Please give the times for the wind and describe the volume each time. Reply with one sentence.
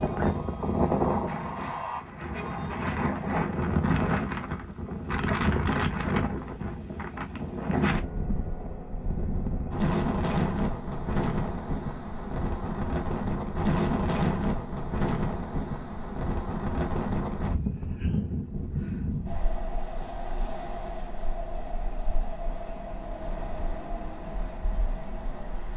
You can hear the wind from 0.0 to 25.7 s, getting quieter.